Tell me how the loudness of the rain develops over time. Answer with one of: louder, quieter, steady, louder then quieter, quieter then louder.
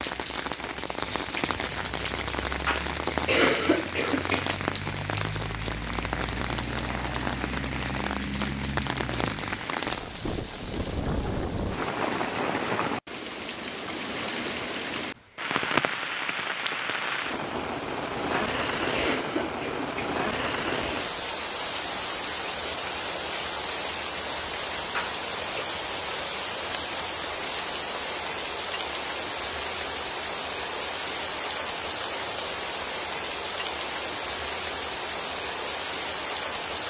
steady.